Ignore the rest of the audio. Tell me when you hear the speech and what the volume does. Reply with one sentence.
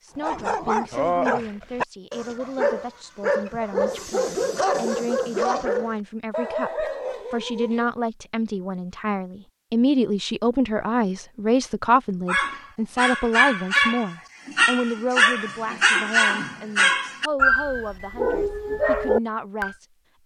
You can hear the speech from 0.0 to 20.2 s, getting louder then quieter.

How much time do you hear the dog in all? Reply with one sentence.
The dog can be heard for 15 seconds in total.